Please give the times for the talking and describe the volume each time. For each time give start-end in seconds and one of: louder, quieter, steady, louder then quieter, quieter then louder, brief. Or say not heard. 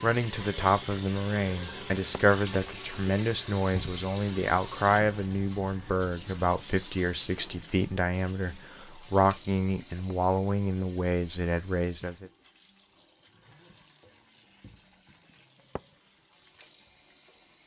0.0-12.2 steady.